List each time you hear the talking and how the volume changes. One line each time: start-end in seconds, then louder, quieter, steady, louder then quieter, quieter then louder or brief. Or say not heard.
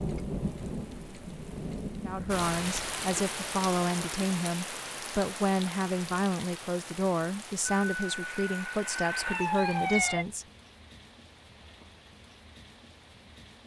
2.0-10.4 steady.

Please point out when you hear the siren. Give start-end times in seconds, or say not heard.
7.7-10.2.